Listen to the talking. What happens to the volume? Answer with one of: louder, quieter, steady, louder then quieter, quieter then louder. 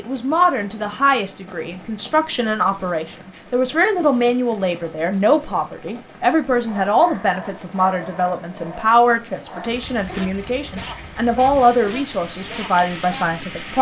steady.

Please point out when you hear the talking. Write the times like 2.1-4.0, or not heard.
0.0-13.7.